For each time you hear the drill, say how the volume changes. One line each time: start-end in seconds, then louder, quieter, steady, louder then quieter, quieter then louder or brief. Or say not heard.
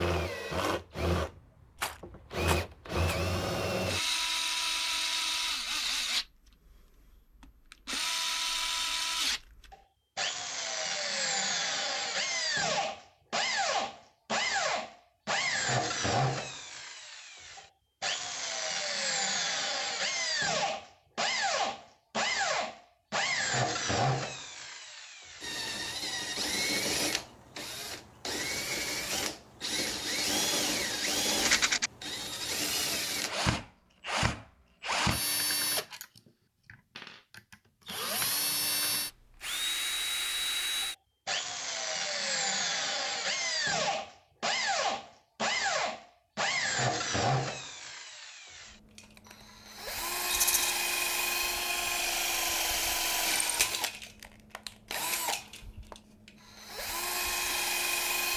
0.0-58.3 steady.